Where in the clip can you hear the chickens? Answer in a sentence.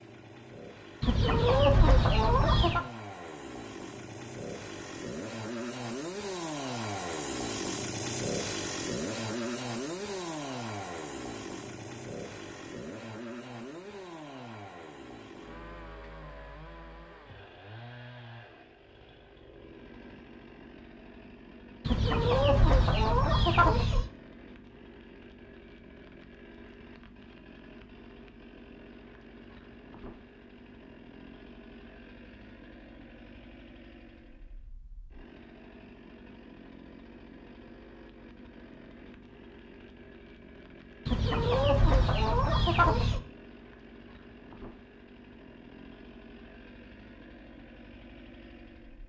You can hear the chickens from 1.0 to 2.9 s, from 21.9 to 24.1 s and from 41.0 to 43.2 s.